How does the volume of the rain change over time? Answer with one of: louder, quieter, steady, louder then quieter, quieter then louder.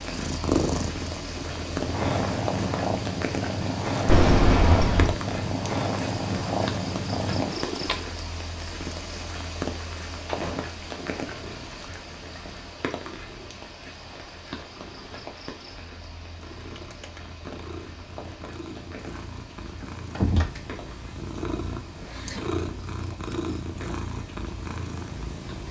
quieter.